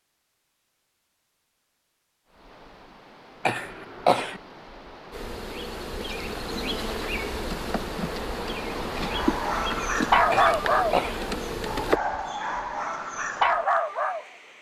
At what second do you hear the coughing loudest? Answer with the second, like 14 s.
4 s.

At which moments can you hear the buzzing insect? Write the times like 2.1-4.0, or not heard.
5.1-12.0.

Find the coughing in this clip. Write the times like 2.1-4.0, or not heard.
3.5-4.4, 10.3-11.2.